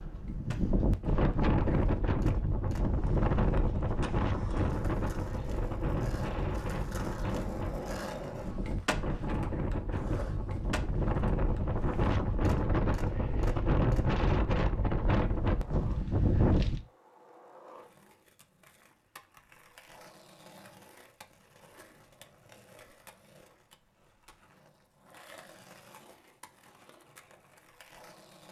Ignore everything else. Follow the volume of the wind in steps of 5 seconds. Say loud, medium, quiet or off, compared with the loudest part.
loud, medium, loud, loud, off, off.